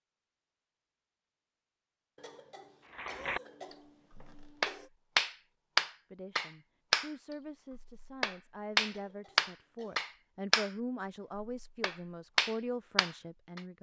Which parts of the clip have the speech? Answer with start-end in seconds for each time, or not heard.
6.1-13.7.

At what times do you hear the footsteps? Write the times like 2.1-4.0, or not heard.
not heard.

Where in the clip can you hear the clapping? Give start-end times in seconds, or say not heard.
3.0-3.4, 4.4-7.1, 7.8-10.7, 11.6-13.6.